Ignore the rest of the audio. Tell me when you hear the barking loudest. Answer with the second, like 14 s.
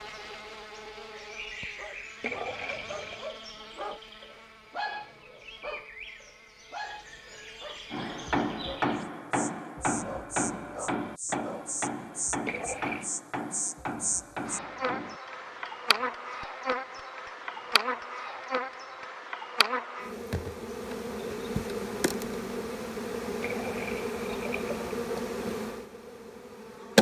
5 s.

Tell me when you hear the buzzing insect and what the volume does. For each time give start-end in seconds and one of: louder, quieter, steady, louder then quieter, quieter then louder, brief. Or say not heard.
0.0-26.9 louder.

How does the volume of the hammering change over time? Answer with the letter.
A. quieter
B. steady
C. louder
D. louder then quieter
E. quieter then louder
A.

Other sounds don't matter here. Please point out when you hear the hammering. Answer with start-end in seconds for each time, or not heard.
7.9-19.1.